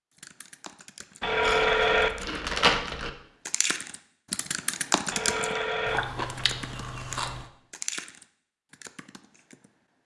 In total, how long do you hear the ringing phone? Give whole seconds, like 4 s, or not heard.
2 s.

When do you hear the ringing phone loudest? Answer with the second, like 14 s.
2 s.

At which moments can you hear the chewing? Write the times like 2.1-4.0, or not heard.
1.4-3.1, 5.8-7.5.